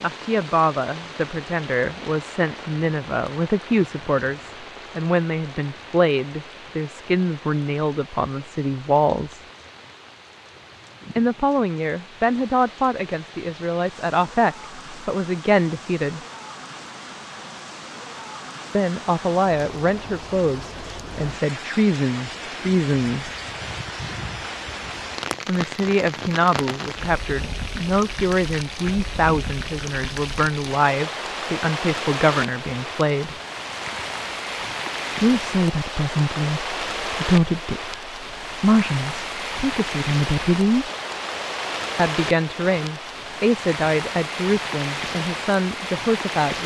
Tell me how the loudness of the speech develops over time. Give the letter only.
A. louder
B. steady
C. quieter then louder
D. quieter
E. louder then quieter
B.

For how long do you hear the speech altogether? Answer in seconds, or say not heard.
37 s.